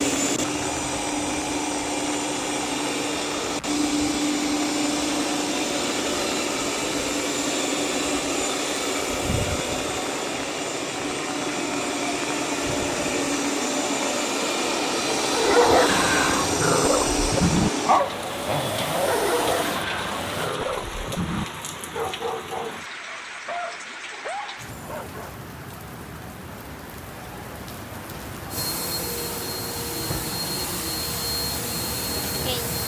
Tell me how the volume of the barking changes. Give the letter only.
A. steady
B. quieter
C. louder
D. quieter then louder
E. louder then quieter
B.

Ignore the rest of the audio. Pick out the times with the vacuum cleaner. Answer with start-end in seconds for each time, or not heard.
0.0-20.6, 28.5-32.8.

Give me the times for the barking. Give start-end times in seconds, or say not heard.
15.3-25.4.